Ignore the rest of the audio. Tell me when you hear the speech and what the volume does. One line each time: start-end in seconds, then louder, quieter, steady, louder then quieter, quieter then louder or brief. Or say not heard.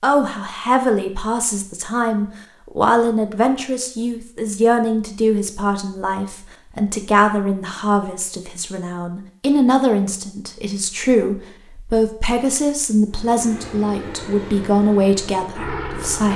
0.0-16.3 steady.